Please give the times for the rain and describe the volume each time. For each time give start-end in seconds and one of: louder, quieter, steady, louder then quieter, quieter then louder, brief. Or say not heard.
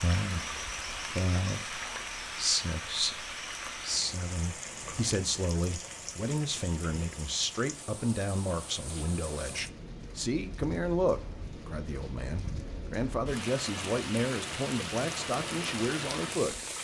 0.0-16.7 quieter then louder.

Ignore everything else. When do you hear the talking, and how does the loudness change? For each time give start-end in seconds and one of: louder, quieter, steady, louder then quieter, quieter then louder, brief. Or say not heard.
0.0-16.6 steady.